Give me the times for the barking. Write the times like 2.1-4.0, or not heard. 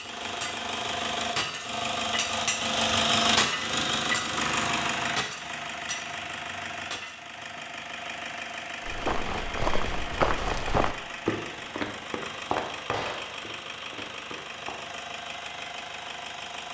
not heard.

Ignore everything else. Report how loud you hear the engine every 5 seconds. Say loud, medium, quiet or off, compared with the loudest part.
loud, medium, medium, medium.